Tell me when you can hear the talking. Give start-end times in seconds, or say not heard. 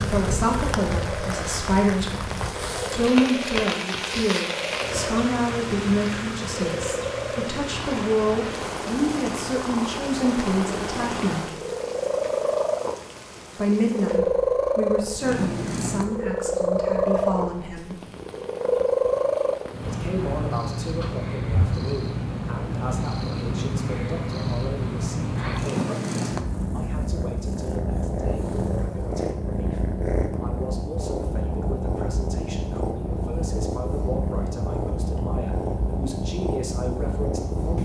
0.0-11.6, 13.6-18.0, 19.8-37.8.